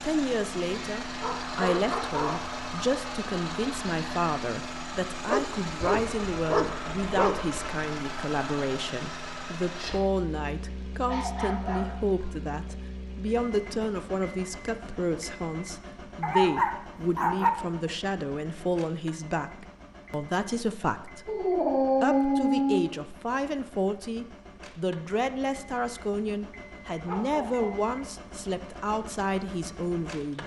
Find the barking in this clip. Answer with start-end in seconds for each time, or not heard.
1.2-2.5, 5.2-7.6, 11.1-12.8, 16.2-17.5, 21.2-22.9, 26.6-27.9.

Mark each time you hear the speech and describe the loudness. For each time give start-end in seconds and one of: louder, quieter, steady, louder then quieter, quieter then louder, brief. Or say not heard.
0.0-30.4 steady.